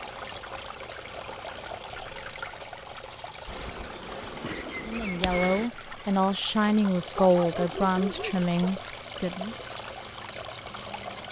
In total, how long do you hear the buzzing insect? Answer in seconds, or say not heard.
2 s.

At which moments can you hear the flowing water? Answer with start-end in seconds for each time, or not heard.
0.0-11.2.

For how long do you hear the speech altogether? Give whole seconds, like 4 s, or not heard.
5 s.